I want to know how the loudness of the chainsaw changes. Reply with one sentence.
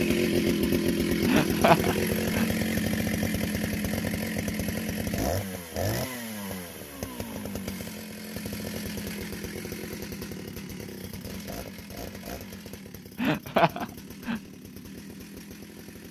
The loudness of the chainsaw goes down.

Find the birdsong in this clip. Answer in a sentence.
The birdsong can't be heard in this clip.